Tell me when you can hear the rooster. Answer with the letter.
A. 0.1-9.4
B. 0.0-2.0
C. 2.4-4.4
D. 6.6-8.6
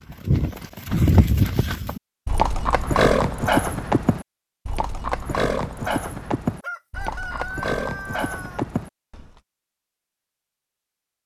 D.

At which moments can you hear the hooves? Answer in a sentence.
You can hear the hooves from 0.1 to 9.4 s.